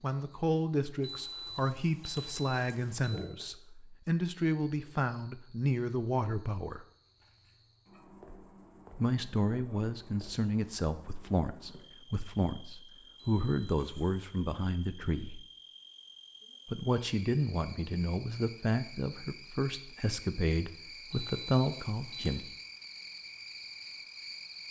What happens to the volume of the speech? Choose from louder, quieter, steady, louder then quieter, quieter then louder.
steady.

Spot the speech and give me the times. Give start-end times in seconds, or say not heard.
0.0-6.8, 8.9-15.4, 16.6-22.5.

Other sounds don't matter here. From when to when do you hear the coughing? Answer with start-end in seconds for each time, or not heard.
not heard.